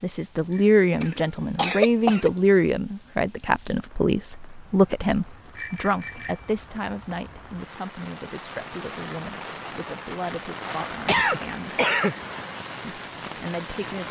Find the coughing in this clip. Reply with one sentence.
The coughing can be heard from 1.0 to 2.3 s and from 11.1 to 12.2 s.